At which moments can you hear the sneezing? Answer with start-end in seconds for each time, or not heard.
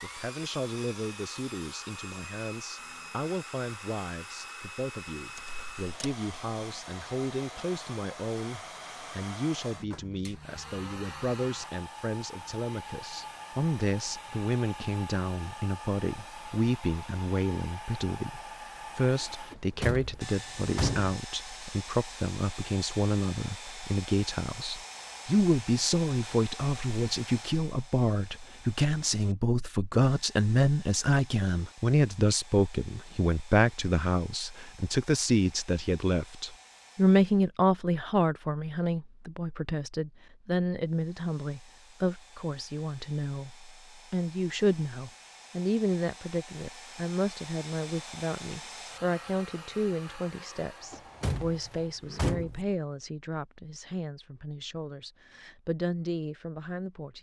not heard.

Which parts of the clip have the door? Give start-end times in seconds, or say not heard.
5.3-6.2, 19.5-21.1, 50.9-52.6.